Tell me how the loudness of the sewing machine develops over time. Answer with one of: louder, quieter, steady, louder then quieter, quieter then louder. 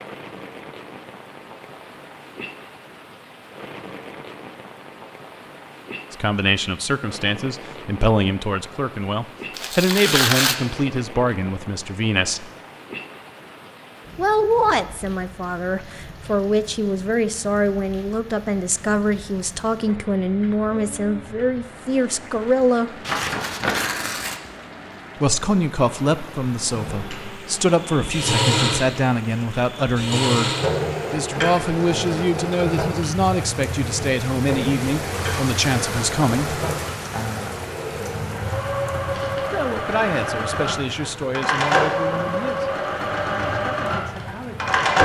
quieter then louder.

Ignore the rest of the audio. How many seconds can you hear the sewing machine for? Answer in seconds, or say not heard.
18 s.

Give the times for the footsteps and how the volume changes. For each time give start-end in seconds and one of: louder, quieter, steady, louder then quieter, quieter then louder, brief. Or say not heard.
not heard.